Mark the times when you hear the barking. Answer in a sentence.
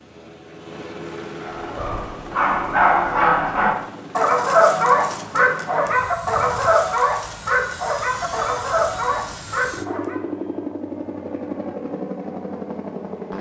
The barking can be heard from 1.4 to 10.2 s.